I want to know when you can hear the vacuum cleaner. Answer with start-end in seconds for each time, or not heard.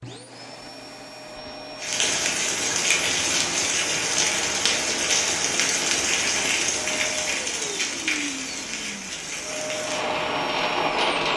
0.0-2.2, 6.8-11.1.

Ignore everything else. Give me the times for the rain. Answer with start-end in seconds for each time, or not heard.
1.8-11.3.